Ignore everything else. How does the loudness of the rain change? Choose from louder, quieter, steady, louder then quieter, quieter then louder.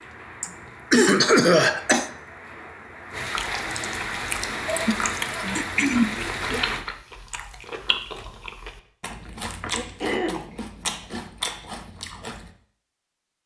louder.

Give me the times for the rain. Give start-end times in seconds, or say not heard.
0.0-6.8.